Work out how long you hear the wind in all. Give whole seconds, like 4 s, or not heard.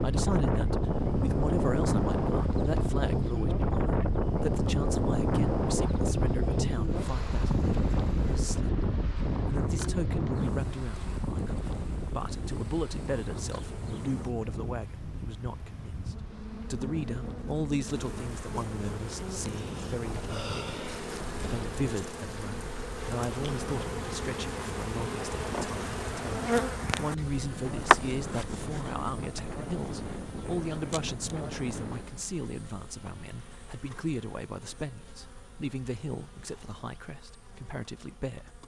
32 s.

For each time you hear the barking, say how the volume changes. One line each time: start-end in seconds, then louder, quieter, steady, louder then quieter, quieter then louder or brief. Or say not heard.
not heard.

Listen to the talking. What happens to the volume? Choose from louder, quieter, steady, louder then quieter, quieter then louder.
steady.